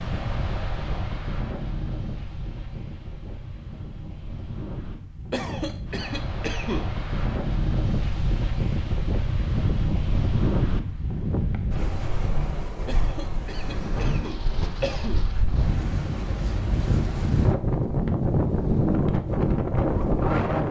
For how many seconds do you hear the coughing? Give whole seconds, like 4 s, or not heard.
4 s.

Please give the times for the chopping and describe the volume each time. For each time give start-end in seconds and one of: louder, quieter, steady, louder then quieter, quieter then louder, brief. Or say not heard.
not heard.